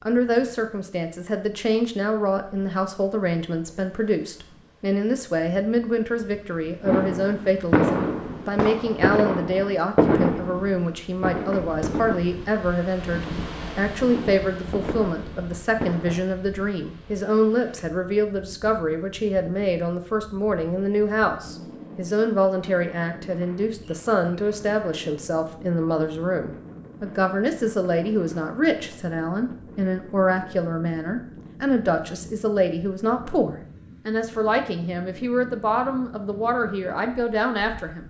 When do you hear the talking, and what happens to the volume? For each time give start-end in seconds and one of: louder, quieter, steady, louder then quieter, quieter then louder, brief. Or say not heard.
0.0-38.0 steady.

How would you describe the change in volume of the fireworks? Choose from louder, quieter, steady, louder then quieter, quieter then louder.
quieter.